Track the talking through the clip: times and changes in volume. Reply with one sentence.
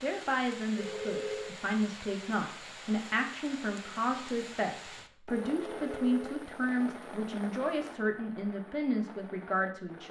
You can hear the talking from 0.0 to 10.0 s, at a steady volume.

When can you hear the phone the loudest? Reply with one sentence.
The loudest moment of the phone is at 1 second.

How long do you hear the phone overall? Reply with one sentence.
You can hear the phone for 2 seconds altogether.